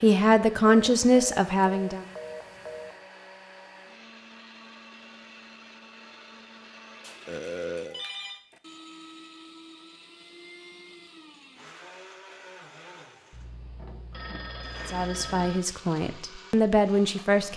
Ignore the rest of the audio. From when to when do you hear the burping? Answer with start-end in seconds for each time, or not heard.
7.2-8.1.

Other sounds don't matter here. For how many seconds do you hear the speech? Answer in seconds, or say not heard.
5 s.